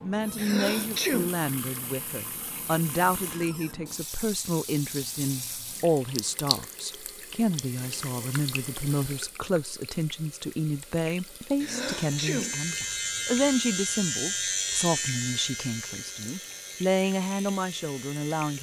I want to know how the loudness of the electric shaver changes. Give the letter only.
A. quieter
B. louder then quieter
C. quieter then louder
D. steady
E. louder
A.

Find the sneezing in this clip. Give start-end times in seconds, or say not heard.
0.3-1.4, 11.6-12.6.